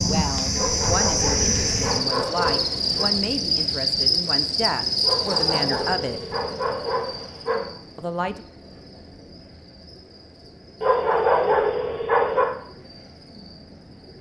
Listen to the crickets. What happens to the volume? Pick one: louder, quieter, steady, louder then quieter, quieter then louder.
quieter.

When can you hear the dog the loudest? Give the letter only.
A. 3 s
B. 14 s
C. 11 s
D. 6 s
C.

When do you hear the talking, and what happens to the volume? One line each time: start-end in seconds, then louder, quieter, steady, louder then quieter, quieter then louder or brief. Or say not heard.
0.0-6.2 steady
8.0-8.4 brief.